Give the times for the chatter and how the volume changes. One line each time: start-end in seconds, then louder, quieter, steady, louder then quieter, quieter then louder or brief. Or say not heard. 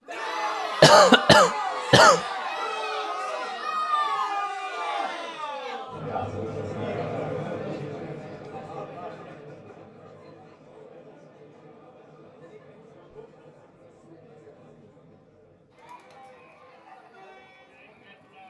0.1-18.4 quieter.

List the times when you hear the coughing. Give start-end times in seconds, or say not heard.
0.8-2.2.